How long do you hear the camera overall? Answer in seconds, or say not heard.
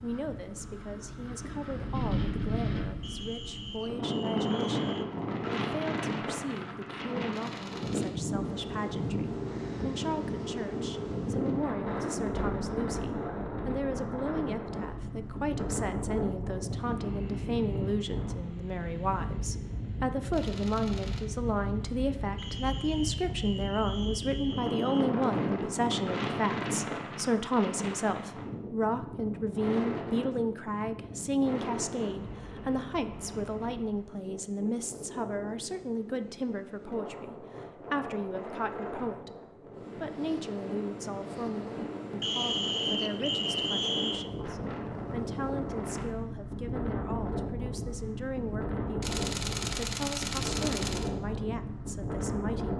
4 s.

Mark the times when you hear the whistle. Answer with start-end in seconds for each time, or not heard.
3.0-5.0, 22.4-25.1, 42.2-44.3.